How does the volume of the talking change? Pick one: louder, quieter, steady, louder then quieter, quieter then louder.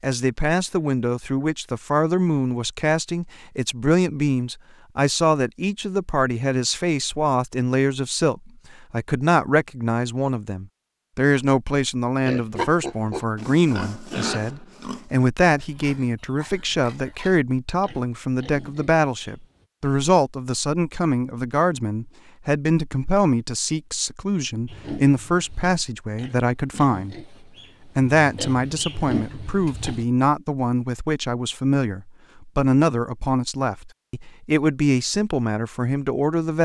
steady.